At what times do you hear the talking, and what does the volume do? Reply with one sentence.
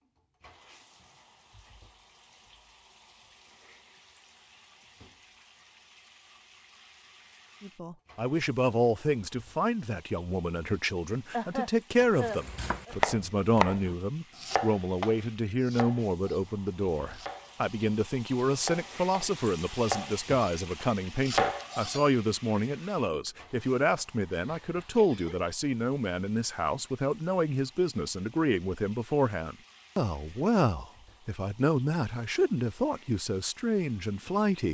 You can hear the talking from 7.6 to 34.6 s, at a steady volume.